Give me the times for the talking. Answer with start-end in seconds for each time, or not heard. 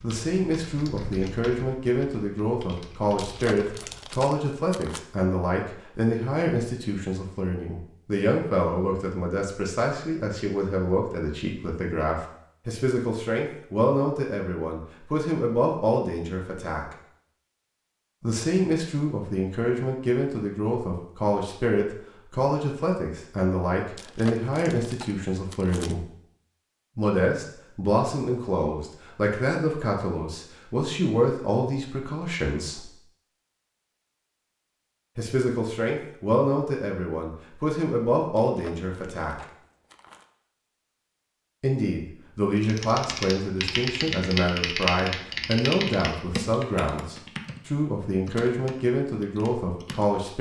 0.0-16.9, 18.2-26.1, 26.9-32.9, 35.1-39.5, 41.6-50.3.